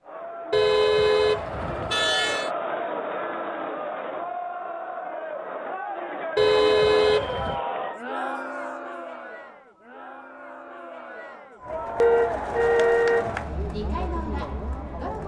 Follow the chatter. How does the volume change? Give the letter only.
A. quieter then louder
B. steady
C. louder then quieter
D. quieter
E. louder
A.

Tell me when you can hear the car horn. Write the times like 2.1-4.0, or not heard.
0.5-2.5, 6.3-7.6, 12.0-13.3.